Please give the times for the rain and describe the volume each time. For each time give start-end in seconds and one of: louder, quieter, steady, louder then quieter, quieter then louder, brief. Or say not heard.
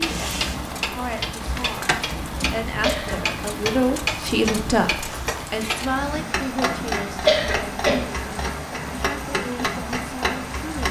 0.0-10.8 steady.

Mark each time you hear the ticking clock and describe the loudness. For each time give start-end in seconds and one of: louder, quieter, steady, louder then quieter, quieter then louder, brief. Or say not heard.
0.0-10.8 steady.